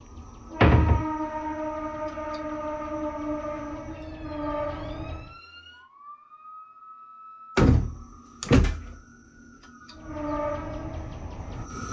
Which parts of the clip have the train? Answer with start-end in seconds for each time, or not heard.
0.0-5.3, 9.9-11.8.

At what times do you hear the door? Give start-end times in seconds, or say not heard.
0.6-1.1, 7.5-8.9.